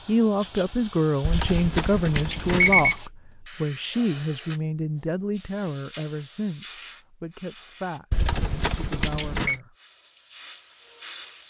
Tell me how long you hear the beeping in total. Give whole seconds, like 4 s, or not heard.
3 s.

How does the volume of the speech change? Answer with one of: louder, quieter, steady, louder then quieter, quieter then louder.
quieter.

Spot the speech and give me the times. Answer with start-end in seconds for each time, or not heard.
0.1-9.8.